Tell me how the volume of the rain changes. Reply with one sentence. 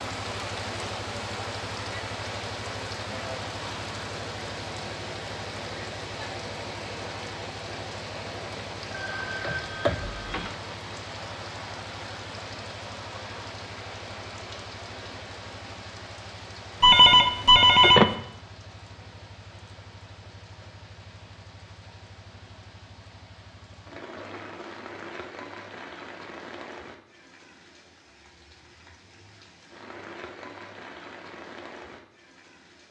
The loudness of the rain goes down.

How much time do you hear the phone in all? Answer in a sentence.
You can hear the phone for 3 seconds altogether.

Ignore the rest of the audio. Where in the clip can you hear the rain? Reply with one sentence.
The rain can be heard from 0.0 to 32.8 s.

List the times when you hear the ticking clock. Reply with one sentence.
The ticking clock can't be heard in this clip.